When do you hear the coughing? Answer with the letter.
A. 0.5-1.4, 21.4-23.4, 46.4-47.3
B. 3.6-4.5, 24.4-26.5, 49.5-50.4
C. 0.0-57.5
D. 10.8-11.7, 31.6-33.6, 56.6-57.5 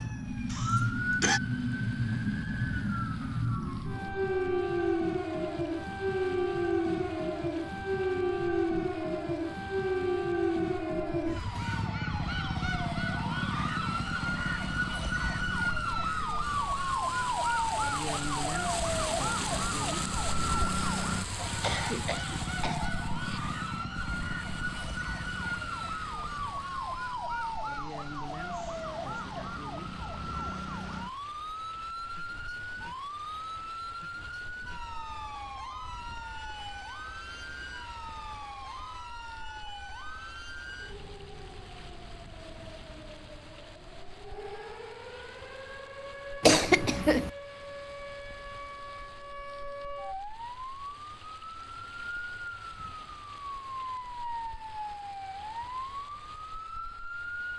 A.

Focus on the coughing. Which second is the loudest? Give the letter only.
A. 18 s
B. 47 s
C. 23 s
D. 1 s
B.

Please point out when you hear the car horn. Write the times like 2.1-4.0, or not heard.
not heard.